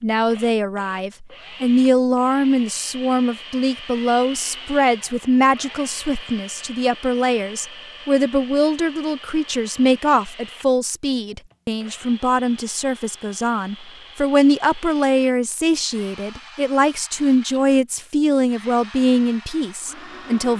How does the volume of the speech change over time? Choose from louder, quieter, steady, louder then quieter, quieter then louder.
steady.